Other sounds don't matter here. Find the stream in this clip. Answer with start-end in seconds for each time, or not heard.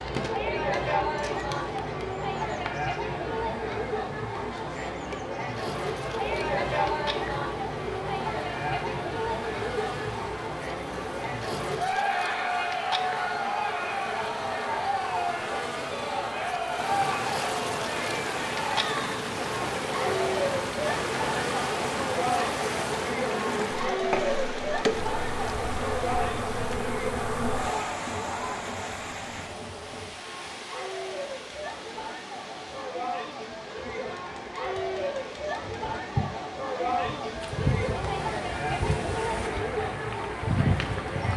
16.6-41.3.